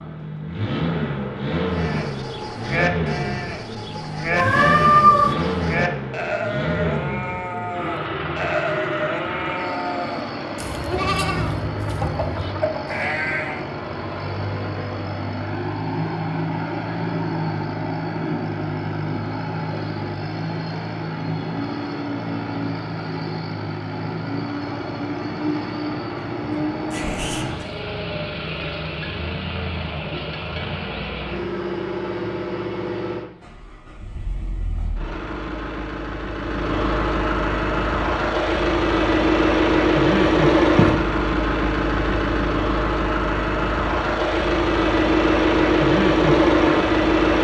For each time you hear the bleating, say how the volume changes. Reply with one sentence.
The bleating can be heard from 1.6 to 13.7 s, at a steady volume.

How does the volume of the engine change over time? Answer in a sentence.
The loudness of the engine goes up.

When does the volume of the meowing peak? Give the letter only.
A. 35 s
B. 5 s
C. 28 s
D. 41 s
B.